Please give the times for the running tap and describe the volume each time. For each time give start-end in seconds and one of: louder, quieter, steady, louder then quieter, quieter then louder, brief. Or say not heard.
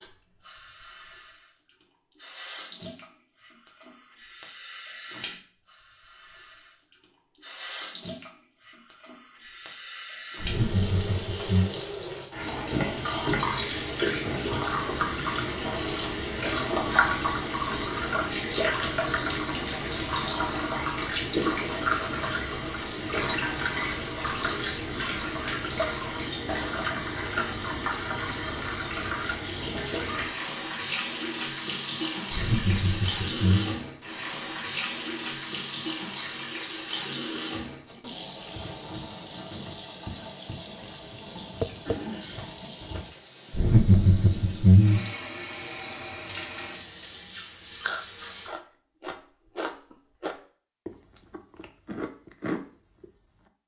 0.0-48.5 louder then quieter.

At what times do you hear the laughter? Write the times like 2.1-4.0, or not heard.
10.4-11.7, 32.3-33.8, 43.5-45.0.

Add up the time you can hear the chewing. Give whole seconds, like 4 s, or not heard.
5 s.